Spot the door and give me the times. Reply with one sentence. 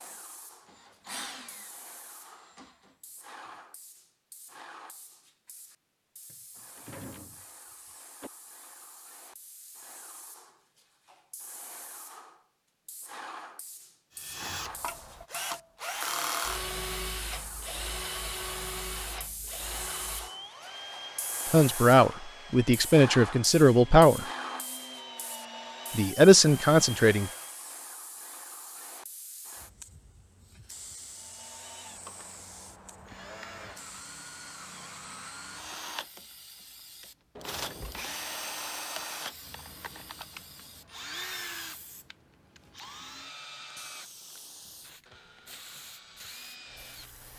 You can hear the door from 6.3 to 8.3 s and from 37.4 to 38.0 s.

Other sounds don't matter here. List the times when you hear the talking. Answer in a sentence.
You can hear the talking from 21.5 to 24.2 s and from 25.9 to 27.3 s.